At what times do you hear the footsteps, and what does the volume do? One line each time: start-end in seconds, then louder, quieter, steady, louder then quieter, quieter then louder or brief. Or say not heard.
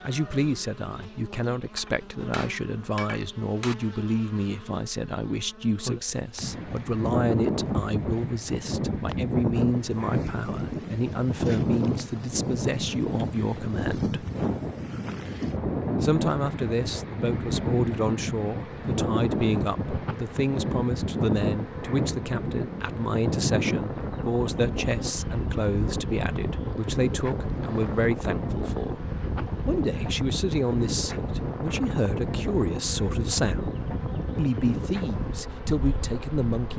not heard.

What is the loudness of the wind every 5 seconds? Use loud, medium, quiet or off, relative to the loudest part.
off, loud, loud, loud, loud, loud, loud, medium.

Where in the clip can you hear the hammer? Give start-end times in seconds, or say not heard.
1.8-3.8.